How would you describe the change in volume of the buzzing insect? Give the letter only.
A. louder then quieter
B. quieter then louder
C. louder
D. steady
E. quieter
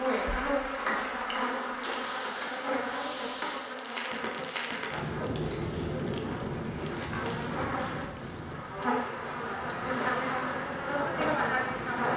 B.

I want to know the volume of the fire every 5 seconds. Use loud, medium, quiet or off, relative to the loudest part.
loud, loud, medium.